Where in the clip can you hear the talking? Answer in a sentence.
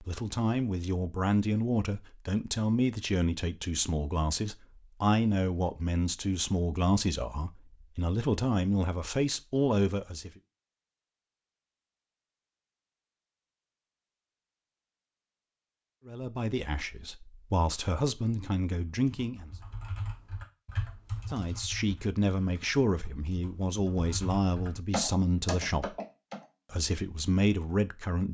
You can hear the talking from 0.0 to 10.3 s, from 16.1 to 19.5 s, from 21.3 to 25.9 s and from 26.7 to 28.2 s.